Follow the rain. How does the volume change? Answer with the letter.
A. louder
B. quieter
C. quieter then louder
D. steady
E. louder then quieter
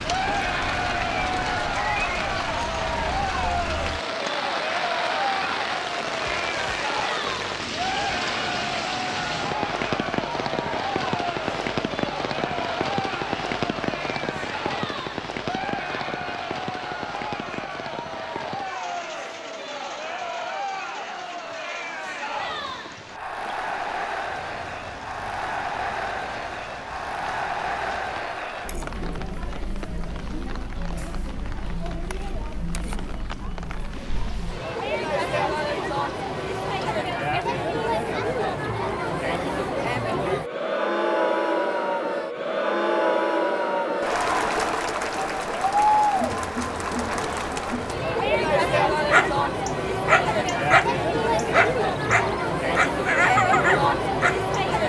B.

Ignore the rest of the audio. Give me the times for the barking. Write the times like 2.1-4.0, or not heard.
48.9-54.5.